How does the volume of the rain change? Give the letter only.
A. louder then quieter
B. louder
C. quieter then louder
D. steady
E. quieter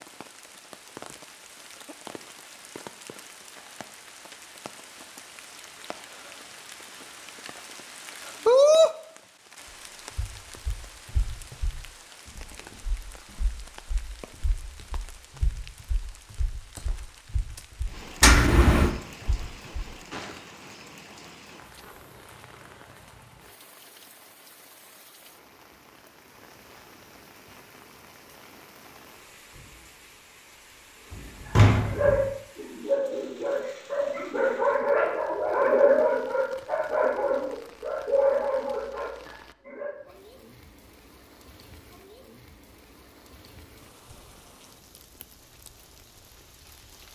E.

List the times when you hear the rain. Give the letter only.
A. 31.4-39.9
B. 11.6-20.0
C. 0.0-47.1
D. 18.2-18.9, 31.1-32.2
C.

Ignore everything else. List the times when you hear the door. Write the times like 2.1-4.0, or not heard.
18.2-18.9, 31.1-32.2.